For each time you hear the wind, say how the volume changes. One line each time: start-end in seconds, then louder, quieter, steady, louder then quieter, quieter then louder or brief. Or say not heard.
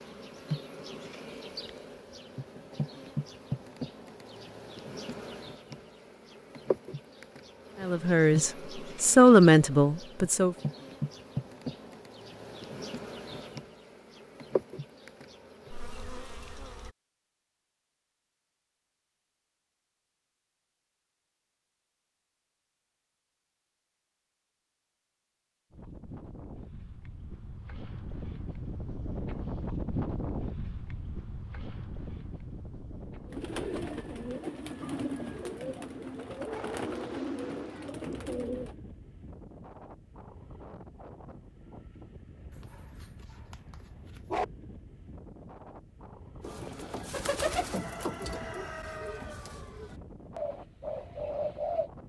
25.7-52.0 quieter.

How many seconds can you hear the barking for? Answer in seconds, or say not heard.
2 s.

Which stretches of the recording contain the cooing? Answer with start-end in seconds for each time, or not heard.
33.2-38.8, 46.4-51.9.